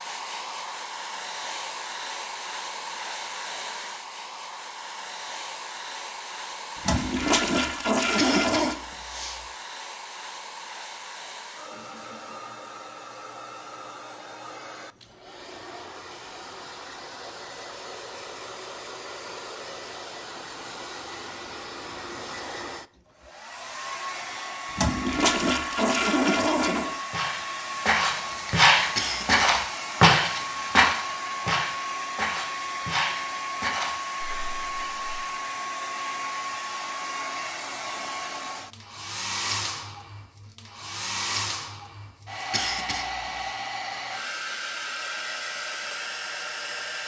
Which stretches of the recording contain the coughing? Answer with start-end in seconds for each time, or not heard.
8.2-9.4, 28.9-29.4, 42.5-43.5.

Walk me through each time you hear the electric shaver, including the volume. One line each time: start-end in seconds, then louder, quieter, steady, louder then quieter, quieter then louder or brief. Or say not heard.
not heard.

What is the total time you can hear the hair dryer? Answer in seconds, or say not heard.
47 s.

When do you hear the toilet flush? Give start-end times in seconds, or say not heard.
6.8-8.8, 24.8-26.9.